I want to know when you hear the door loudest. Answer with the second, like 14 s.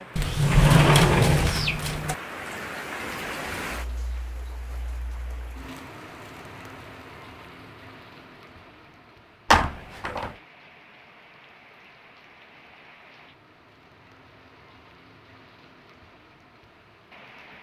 1 s.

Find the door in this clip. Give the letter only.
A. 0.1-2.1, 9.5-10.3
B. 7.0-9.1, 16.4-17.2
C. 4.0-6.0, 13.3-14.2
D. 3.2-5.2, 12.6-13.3
A.